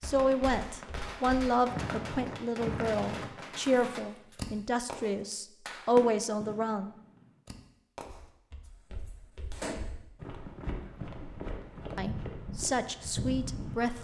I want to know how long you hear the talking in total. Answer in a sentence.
You can hear the talking for 9 seconds altogether.